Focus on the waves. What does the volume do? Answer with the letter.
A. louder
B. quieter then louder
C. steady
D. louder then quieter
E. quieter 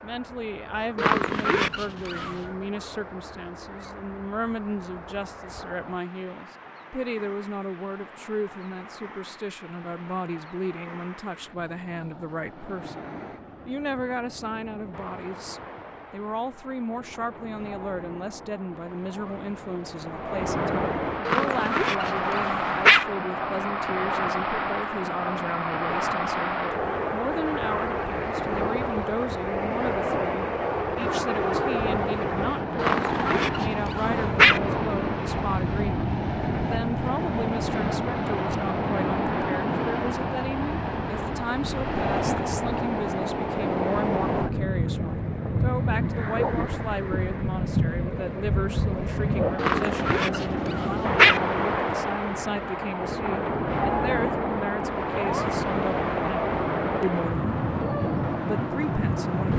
A.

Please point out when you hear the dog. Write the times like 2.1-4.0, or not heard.
0.9-2.4, 21.2-23.1, 32.8-34.6, 49.5-51.4.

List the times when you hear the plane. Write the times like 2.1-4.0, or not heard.
not heard.